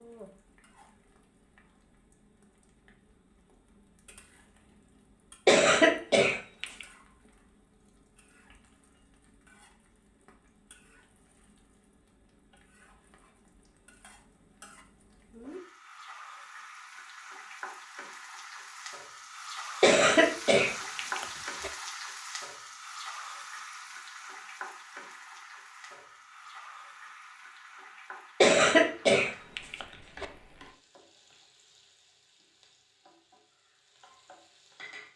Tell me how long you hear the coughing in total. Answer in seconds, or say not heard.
5 s.